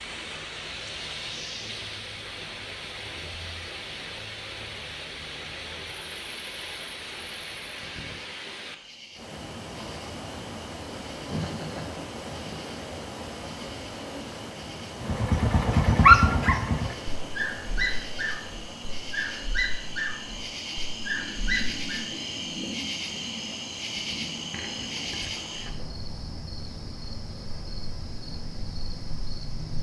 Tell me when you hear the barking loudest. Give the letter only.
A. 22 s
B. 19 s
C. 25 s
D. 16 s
D.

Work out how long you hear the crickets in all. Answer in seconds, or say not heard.
30 s.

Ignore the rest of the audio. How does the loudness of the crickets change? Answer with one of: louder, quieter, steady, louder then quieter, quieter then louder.
louder.